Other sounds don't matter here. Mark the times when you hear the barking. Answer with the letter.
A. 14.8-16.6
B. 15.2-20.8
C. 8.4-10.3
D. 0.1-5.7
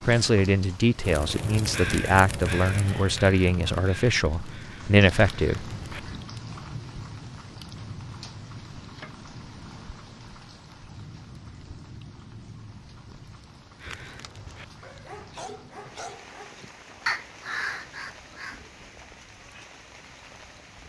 A.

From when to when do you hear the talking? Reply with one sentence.
The talking can be heard from 0.1 to 5.7 s.